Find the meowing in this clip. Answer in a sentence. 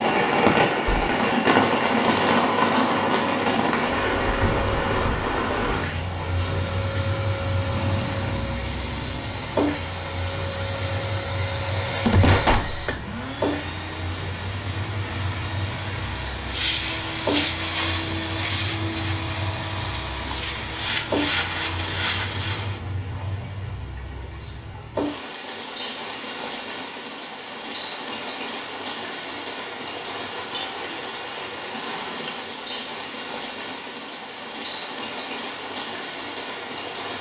The meowing can't be heard in this clip.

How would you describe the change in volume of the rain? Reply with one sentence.
The volume of the rain goes down.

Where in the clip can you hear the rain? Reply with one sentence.
You can hear the rain from 0.0 to 37.1 s.